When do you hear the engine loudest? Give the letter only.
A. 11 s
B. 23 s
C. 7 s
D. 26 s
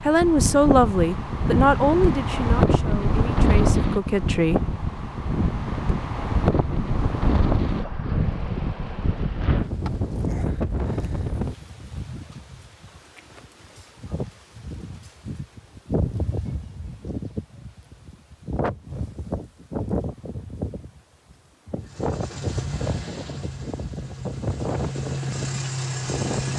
D.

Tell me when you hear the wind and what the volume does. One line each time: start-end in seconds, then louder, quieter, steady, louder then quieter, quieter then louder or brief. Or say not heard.
0.0-26.5 quieter.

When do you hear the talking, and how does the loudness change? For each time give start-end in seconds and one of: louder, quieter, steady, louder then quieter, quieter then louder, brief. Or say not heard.
0.0-4.7 quieter then louder.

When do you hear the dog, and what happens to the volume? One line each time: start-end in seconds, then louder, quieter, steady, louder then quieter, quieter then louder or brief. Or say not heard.
not heard.